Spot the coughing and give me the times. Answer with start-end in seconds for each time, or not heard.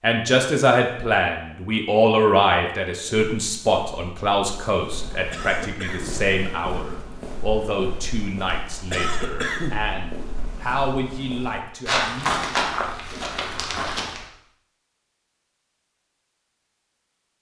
5.3-6.2, 8.9-9.8.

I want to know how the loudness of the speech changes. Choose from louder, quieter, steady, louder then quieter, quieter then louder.
quieter.